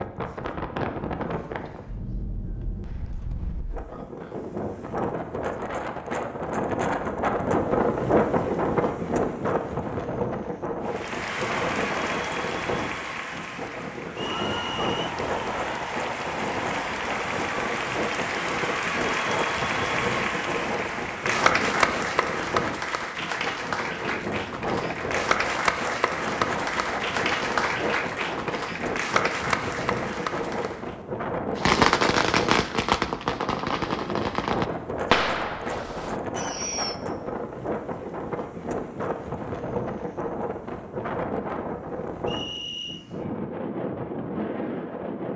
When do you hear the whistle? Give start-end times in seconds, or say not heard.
14.2-14.9, 42.2-43.0.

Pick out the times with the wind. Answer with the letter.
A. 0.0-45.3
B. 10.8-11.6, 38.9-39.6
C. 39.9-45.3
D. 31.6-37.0
A.